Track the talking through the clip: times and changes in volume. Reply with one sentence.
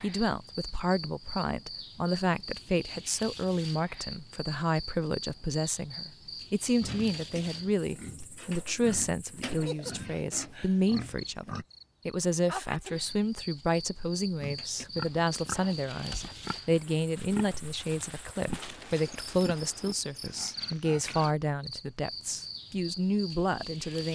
You can hear the talking from 0.0 to 24.0 s, at a steady volume.